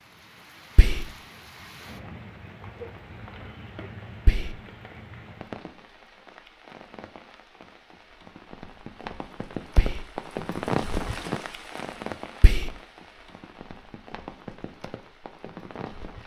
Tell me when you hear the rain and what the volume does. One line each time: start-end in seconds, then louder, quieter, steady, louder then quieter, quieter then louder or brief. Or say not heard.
0.0-16.2 louder then quieter.